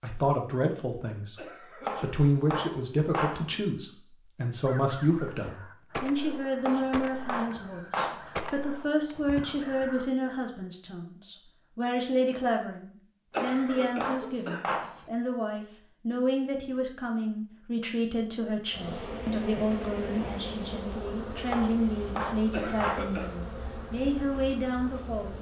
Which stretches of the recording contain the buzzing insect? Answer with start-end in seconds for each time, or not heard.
18.6-25.3.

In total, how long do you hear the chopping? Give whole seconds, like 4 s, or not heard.
7 s.